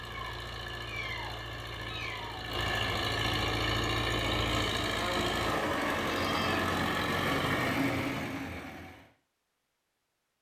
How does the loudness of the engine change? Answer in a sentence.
The volume of the engine goes up.